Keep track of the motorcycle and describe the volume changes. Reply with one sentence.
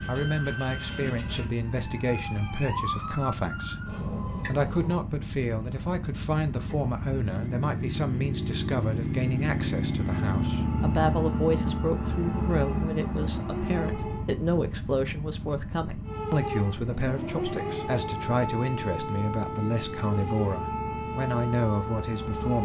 The loudness of the motorcycle goes up, then down.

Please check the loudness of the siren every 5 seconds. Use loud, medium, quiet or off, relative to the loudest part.
loud, off, medium, loud, loud.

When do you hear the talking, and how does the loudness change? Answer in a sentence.
You can hear the talking from 0.1 to 22.6 s, at a steady volume.